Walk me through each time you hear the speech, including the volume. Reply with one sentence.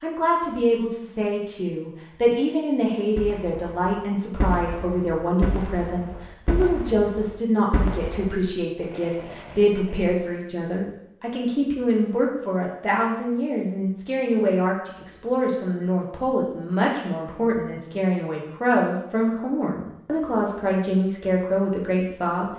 You can hear the speech from 0.0 to 22.5 s, at a steady volume.